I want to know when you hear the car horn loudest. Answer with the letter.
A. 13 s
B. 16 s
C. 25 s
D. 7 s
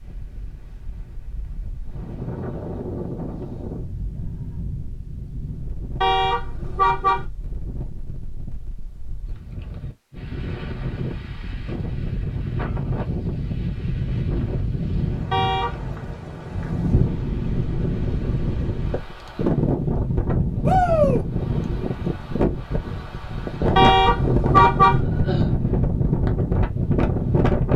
C.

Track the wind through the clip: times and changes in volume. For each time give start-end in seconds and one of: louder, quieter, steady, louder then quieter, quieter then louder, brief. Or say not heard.
0.0-27.7 louder.